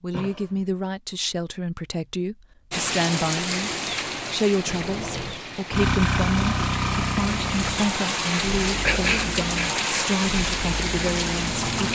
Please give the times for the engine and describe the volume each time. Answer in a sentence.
You can hear the engine from 5.7 to 11.9 s, getting quieter.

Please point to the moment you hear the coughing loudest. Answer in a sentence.
The loudest moment of the coughing is at 9 seconds.